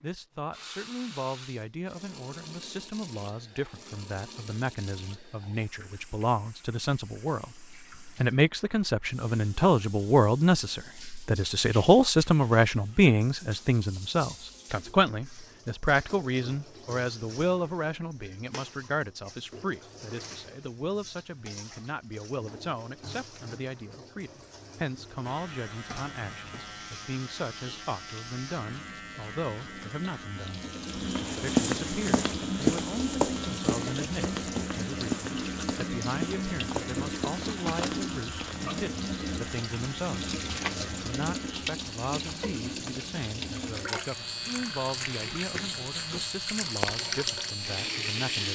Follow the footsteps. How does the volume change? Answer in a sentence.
The volume of the footsteps goes down.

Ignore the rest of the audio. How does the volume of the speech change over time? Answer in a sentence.
The loudness of the speech goes up, then down.